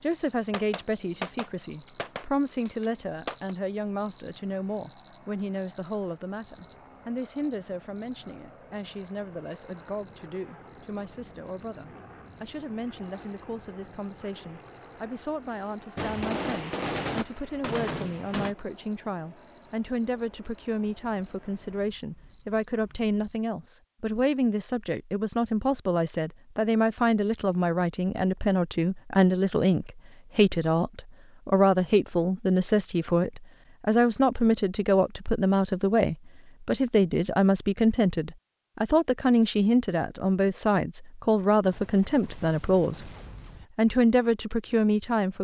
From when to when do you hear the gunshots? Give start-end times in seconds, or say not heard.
0.5-3.5, 15.9-18.6, 41.6-43.7.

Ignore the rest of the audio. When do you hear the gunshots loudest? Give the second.
17 s.